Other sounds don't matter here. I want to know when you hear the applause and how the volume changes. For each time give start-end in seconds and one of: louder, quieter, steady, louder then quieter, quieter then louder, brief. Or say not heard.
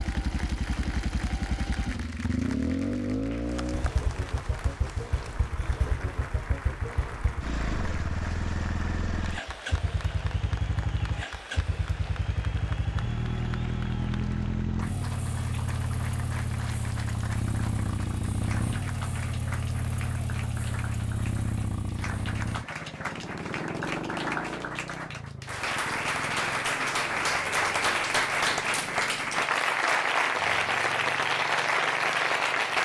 0.0-32.8 louder.